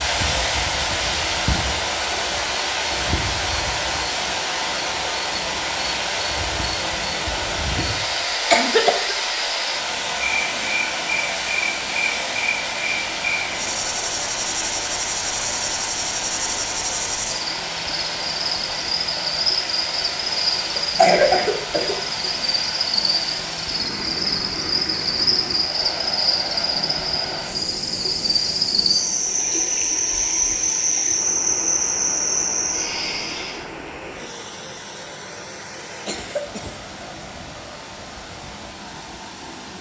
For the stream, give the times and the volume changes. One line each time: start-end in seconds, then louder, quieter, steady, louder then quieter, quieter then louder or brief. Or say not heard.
0.0-39.7 quieter.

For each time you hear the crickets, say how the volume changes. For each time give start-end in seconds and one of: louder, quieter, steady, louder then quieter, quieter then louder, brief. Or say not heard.
0.0-33.6 louder.